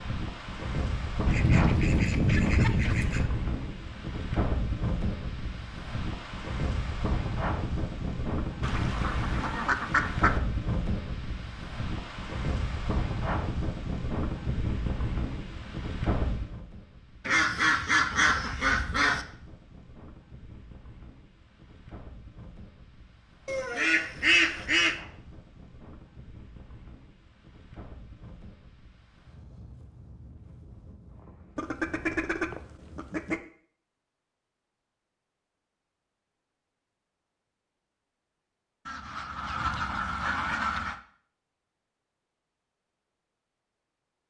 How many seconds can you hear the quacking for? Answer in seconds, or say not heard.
11 s.